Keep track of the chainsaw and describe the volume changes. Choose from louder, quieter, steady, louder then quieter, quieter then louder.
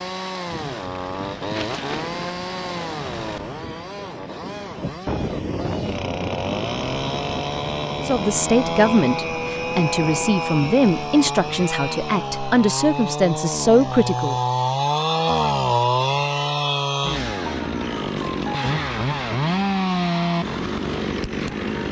louder.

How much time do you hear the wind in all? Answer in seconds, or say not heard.
12 s.